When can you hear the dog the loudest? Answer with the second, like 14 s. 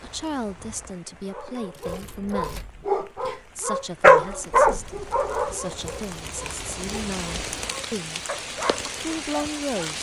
4 s.